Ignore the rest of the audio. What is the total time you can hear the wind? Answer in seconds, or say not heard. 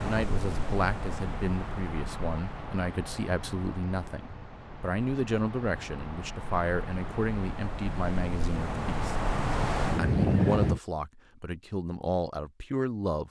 11 s.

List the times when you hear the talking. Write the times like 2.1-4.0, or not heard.
0.0-9.2, 9.9-13.2.